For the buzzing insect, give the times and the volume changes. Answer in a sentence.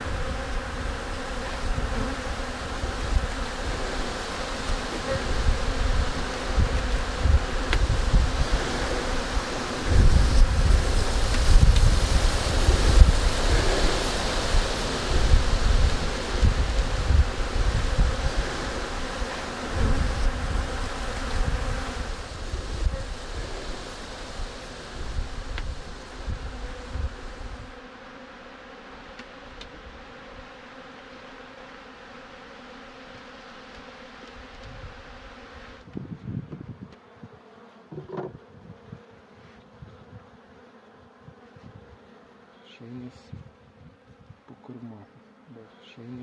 You can hear the buzzing insect from 0.0 to 46.1 s, getting quieter.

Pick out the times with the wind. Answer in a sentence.
The wind can be heard from 0.0 to 27.8 s.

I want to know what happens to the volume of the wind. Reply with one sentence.
The loudness of the wind goes up, then down.